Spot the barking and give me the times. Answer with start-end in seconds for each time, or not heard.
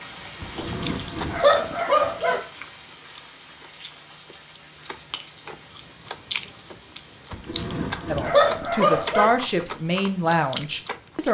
0.4-2.4, 7.3-9.3.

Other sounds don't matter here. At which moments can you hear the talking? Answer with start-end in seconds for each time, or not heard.
8.1-11.2.